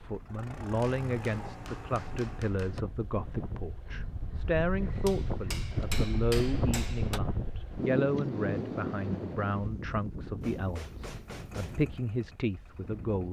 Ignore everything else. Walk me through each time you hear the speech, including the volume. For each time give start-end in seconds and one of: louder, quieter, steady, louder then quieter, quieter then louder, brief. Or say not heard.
0.0-13.2 steady.